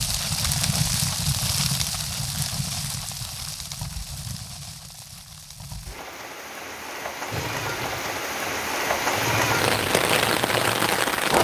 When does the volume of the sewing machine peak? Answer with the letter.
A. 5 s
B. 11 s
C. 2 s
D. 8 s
B.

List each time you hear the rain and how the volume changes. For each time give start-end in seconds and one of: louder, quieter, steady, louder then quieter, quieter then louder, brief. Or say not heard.
0.0-11.3 quieter then louder.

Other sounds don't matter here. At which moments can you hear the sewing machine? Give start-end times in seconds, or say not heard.
7.3-11.3.